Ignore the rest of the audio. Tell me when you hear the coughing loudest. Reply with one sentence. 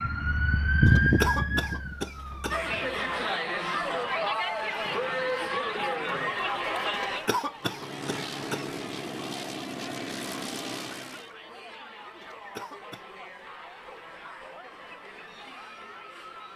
The volume of the coughing peaks at 1 second.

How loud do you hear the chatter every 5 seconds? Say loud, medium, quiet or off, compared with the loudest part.
loud, loud, quiet, quiet.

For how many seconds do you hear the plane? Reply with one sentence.
You can hear the plane for 4 seconds altogether.